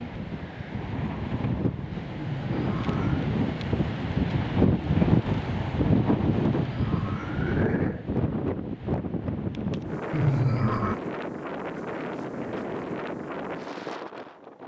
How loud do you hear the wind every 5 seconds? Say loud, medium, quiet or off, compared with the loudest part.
loud, loud, medium.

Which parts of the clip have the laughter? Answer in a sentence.
The laughter can be heard from 2.1 to 3.3 s, from 6.5 to 8.1 s and from 10.1 to 10.9 s.